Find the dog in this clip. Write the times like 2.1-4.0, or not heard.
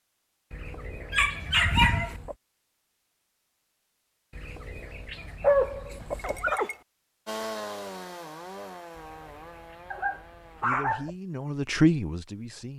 1.1-2.1, 5.4-6.8, 9.9-11.1.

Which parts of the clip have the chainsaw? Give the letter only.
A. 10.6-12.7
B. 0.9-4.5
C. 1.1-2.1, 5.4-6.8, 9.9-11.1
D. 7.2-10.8
D.